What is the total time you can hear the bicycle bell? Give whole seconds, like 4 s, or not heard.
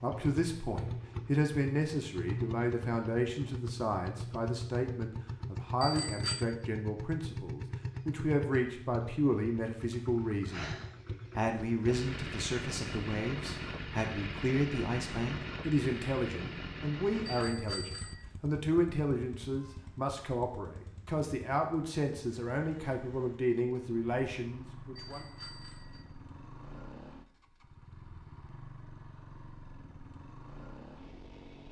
3 s.